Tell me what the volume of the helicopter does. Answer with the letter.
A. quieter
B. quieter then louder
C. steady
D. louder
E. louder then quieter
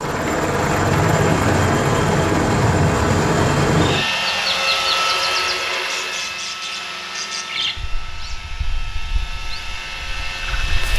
A.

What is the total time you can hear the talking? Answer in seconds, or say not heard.
not heard.